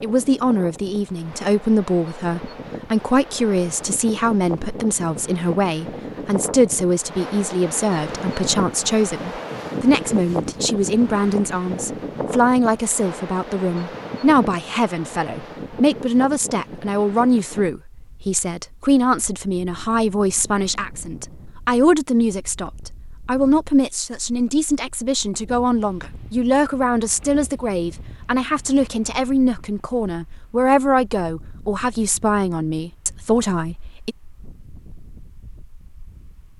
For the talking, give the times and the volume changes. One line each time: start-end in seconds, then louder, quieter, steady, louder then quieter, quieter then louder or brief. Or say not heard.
0.0-34.1 steady.